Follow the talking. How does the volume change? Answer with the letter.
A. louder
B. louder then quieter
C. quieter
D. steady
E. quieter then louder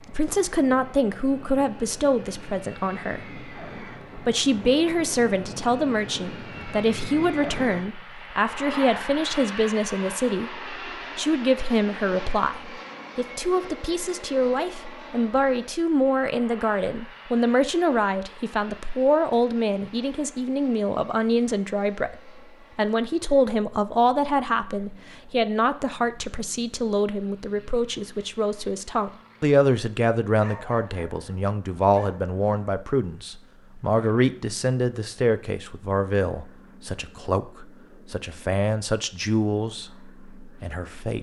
D.